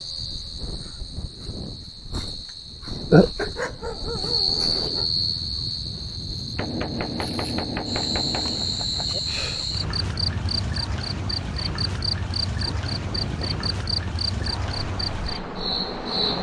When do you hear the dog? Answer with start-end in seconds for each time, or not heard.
3.5-5.2.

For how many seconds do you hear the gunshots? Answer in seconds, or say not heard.
3 s.